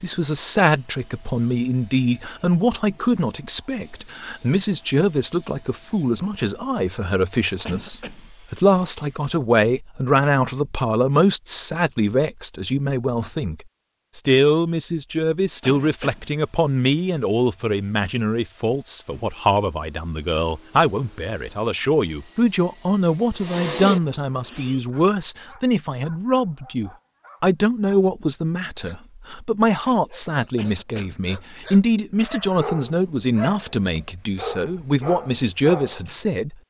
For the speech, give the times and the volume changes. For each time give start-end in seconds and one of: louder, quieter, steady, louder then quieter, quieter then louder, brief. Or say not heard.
0.0-36.5 steady.